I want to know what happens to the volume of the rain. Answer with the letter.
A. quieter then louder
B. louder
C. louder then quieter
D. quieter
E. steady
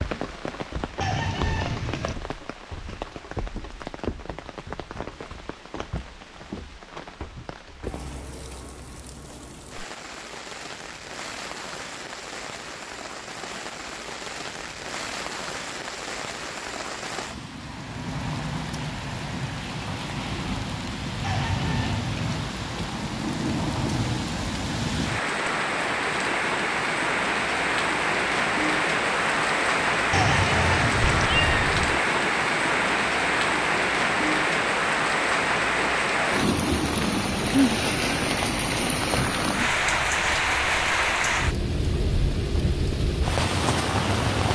B.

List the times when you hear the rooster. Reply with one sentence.
The rooster can be heard from 1.0 to 2.1 s, from 21.2 to 22.4 s and from 30.1 to 31.3 s.